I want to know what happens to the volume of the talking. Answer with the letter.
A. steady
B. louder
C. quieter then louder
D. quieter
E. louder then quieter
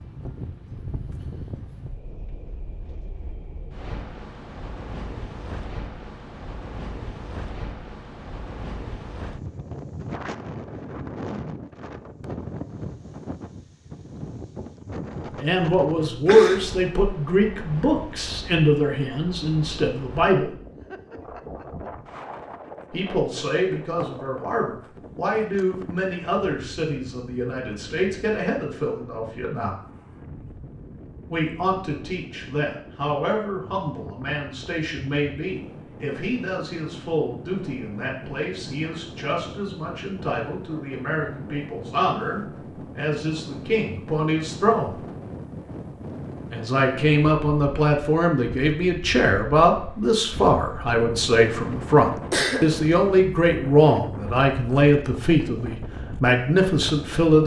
C.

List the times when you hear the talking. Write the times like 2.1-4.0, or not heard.
15.3-20.5, 22.9-29.8, 31.2-45.0, 46.5-57.4.